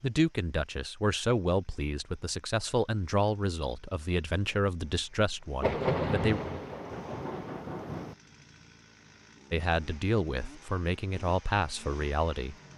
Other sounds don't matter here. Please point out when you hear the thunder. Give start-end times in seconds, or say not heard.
5.6-8.2.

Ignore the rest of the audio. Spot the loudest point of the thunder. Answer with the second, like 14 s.
6 s.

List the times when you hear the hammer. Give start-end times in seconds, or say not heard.
not heard.